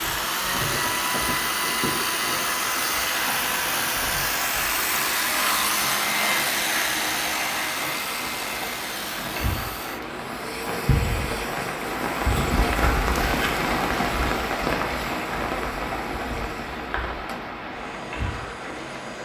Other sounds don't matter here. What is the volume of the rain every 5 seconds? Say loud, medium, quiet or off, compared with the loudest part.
medium, medium, loud, medium.